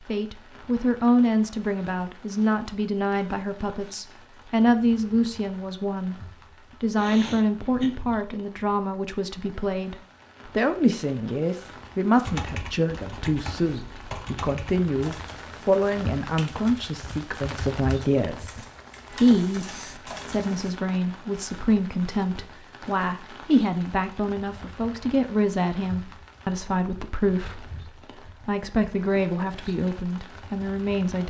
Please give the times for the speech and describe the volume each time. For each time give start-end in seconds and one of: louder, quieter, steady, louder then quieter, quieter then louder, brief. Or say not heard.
0.0-31.2 steady.